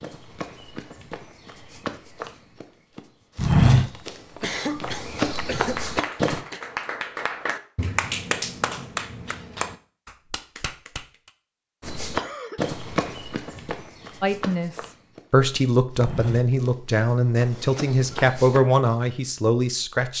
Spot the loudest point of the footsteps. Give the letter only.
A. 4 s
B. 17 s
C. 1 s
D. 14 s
A.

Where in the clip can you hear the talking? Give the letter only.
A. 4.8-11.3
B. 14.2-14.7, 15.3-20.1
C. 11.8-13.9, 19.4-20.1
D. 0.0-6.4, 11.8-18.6
B.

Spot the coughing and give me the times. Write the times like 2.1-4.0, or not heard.
4.4-6.6, 12.1-12.8.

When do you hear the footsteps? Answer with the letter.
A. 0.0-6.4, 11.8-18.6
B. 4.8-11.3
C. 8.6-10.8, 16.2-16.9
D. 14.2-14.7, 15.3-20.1
A.